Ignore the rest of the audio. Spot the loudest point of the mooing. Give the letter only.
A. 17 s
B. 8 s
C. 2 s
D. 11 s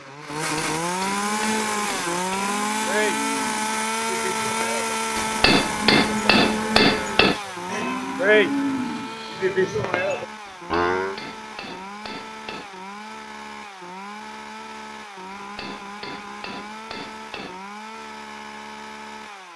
B.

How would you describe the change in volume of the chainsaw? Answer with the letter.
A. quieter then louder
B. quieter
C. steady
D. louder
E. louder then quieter
B.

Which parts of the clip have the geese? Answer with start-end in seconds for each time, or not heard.
not heard.